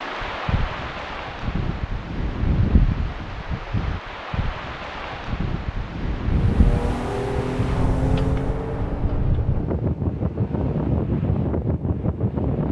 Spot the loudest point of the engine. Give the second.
8 s.